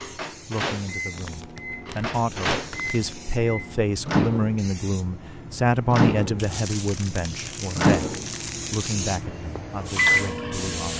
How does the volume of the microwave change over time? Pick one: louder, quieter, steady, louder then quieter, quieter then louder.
louder.